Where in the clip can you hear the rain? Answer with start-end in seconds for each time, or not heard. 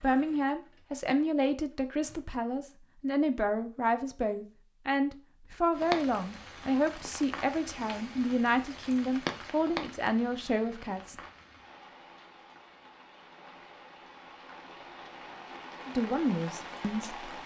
5.7-17.4.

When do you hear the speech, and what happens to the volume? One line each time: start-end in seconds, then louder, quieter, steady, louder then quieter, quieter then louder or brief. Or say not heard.
0.0-11.2 steady
15.8-17.4 brief.